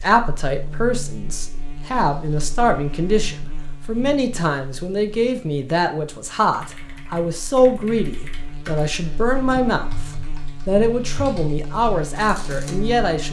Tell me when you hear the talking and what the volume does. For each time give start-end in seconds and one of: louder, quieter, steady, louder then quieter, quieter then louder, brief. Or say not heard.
0.0-13.2 steady.